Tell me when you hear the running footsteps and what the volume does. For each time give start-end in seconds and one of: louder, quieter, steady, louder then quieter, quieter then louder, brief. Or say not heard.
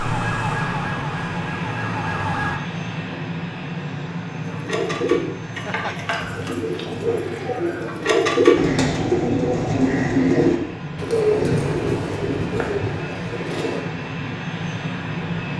not heard.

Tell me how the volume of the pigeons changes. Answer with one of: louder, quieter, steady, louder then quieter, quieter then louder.
louder then quieter.